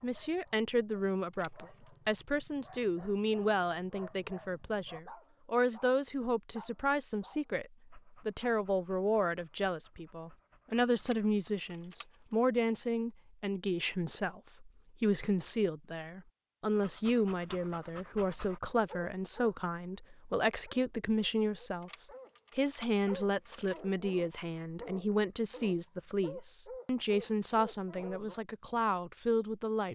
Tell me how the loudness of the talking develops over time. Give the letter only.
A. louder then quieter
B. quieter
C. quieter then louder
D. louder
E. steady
E.